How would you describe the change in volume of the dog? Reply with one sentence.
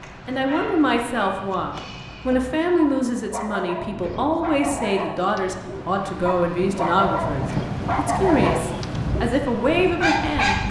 The volume of the dog goes up.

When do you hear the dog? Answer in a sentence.
The dog can be heard from 0.0 to 10.6 s.